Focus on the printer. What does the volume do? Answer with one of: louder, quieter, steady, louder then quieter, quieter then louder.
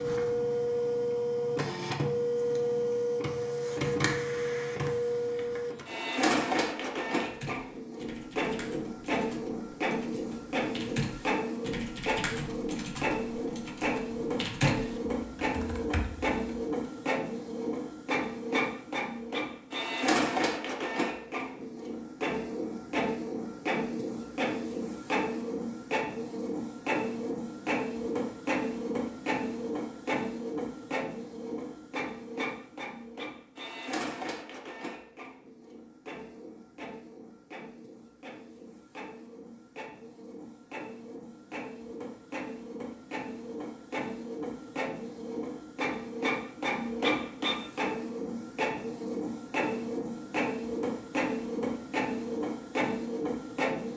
quieter then louder.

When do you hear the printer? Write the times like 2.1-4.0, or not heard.
0.0-53.9.